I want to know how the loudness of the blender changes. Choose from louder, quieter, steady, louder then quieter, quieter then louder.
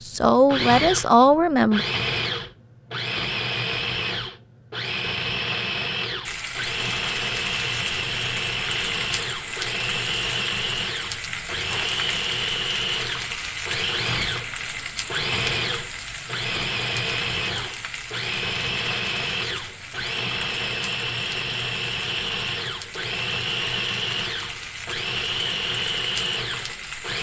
steady.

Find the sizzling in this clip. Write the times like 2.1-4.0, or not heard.
6.2-27.1.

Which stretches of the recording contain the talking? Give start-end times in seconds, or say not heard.
0.1-1.9.